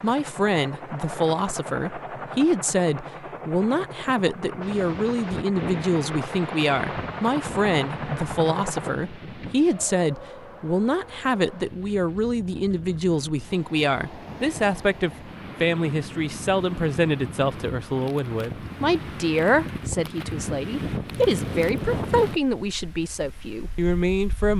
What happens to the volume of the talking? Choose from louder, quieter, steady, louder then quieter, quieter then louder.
steady.